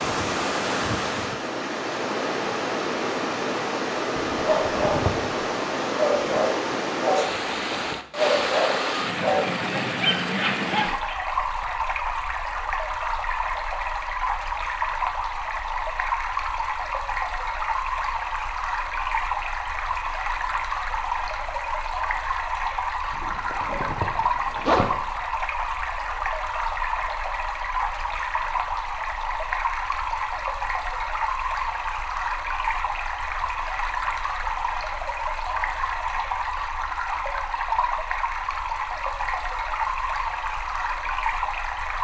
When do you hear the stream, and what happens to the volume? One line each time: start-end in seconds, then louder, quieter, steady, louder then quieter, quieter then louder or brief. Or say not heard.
0.0-41.9 steady.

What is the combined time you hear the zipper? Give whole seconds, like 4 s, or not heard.
3 s.